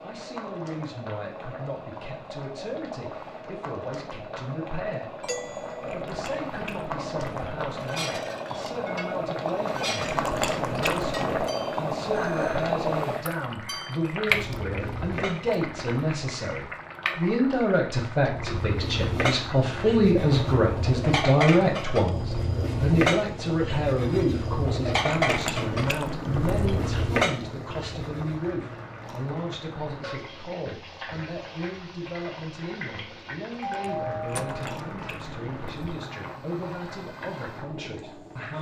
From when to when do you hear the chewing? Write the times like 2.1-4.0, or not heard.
5.8-7.9, 9.9-11.5, 25.0-26.9, 34.4-36.0.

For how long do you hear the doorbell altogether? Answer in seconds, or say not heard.
2 s.